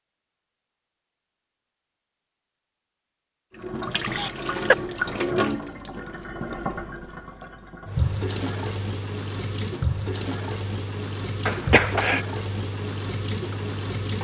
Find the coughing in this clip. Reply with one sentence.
You can hear the coughing from 4.0 to 4.8 s and from 11.4 to 12.2 s.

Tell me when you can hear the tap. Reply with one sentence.
You can hear the tap from 3.5 to 14.1 s.